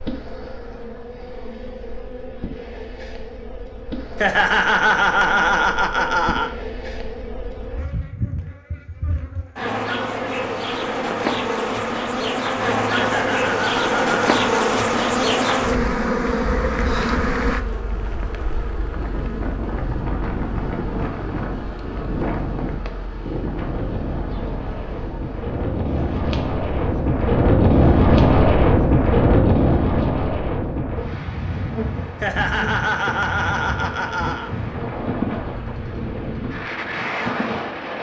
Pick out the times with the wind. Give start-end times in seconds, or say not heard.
18.9-37.9.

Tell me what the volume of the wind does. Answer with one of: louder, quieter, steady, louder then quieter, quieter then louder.
louder then quieter.